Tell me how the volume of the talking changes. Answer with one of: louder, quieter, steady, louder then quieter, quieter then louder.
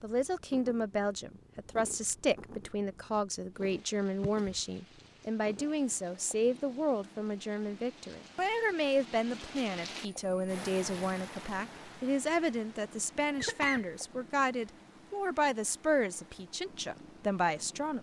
steady.